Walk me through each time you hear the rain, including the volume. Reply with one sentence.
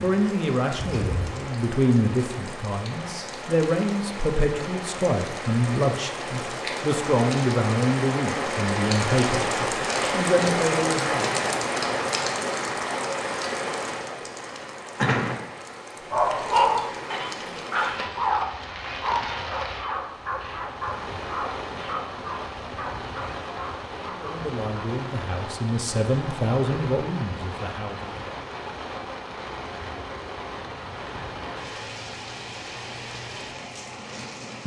You can hear the rain from 0.0 to 34.6 s, getting louder then quieter.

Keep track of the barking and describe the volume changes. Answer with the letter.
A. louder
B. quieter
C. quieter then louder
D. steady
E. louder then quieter
B.